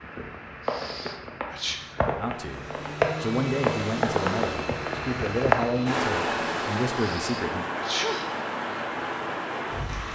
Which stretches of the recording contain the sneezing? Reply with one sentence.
The sneezing can be heard from 0.7 to 1.8 s and from 7.0 to 8.4 s.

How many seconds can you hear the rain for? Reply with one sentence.
The rain can be heard for 10 seconds in total.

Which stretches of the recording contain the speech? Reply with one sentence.
You can hear the speech from 2.1 to 7.7 s.